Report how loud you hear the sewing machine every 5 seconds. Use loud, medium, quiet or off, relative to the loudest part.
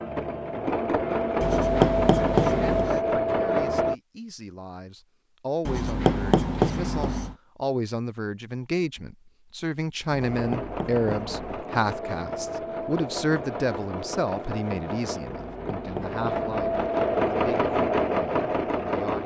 loud, off, medium, loud.